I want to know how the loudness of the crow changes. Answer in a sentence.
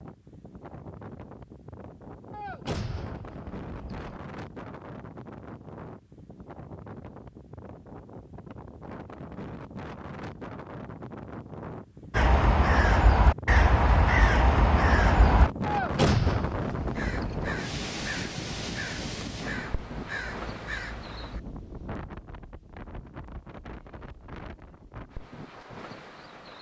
The loudness of the crow goes down.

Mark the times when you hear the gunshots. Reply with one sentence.
You can hear the gunshots from 2.3 to 4.2 s and from 15.7 to 17.5 s.